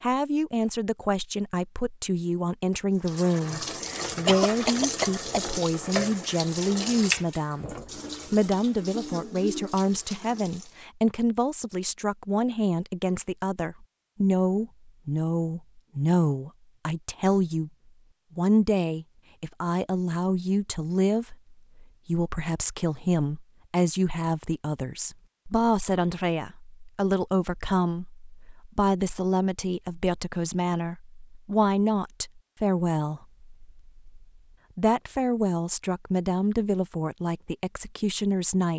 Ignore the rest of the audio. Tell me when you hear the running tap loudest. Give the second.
7 s.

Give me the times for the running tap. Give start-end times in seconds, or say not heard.
3.0-10.8.